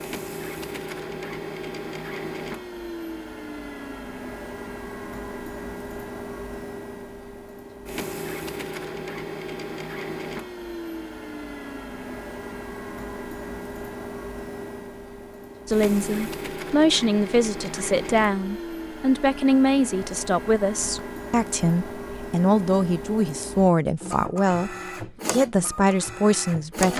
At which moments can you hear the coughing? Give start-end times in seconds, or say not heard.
not heard.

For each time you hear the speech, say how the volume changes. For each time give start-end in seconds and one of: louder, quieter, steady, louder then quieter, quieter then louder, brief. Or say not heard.
15.7-26.9 steady.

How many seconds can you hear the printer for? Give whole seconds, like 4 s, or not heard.
27 s.